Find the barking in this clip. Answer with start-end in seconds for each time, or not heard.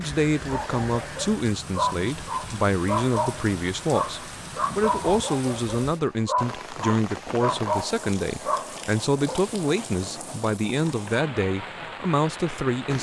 0.5-9.4.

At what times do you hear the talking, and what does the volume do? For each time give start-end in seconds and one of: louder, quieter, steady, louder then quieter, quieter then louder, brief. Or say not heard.
0.0-12.9 steady.